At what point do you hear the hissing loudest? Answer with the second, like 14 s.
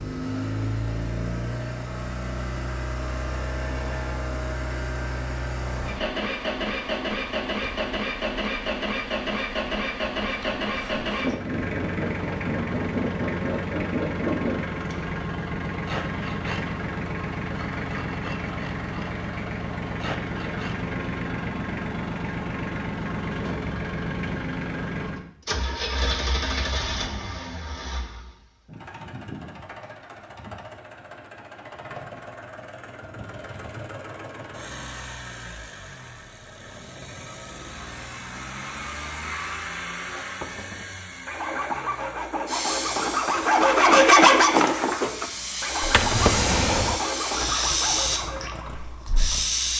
48 s.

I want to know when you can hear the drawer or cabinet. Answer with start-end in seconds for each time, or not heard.
45.8-47.0.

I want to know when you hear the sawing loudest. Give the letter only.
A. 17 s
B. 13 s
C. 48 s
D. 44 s
D.